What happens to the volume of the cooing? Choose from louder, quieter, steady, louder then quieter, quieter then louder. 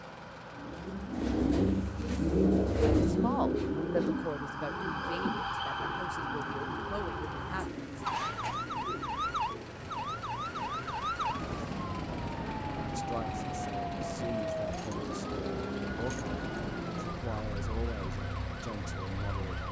quieter.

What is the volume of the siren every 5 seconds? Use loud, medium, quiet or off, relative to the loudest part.
medium, loud, loud, loud.